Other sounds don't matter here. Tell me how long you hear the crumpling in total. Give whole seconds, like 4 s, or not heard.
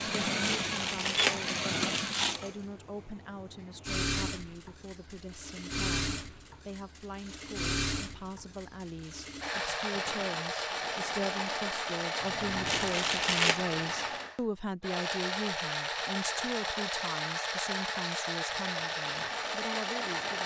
3 s.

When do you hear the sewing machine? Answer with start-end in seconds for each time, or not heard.
0.0-20.4.